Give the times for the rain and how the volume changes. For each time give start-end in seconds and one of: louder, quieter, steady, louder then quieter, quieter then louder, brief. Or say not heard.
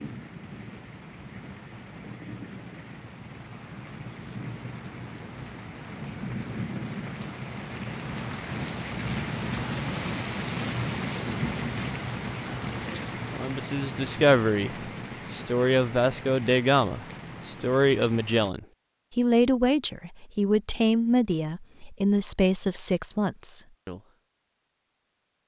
0.0-18.5 louder then quieter.